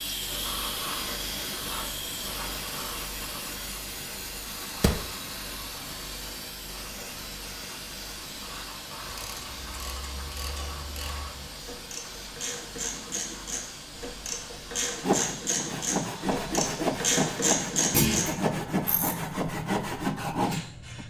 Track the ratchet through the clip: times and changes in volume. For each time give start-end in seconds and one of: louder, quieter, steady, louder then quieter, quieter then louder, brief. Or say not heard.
9.0-19.1 louder.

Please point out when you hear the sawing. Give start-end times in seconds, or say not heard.
15.0-21.0.